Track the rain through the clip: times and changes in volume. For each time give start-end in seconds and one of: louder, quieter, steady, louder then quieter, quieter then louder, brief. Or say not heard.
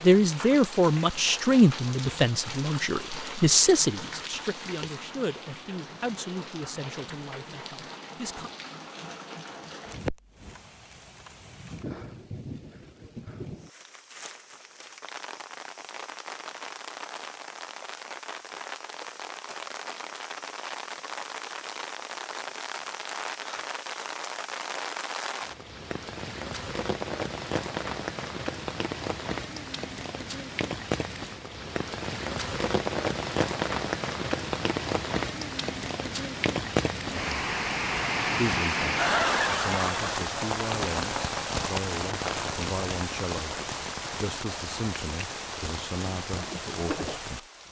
0.0-47.6 louder.